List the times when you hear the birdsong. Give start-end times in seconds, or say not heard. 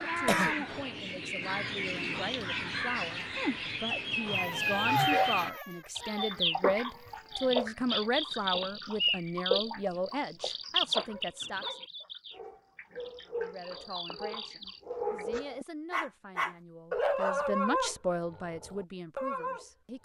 0.0-15.2.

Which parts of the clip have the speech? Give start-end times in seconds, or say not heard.
0.0-11.8, 13.2-20.0.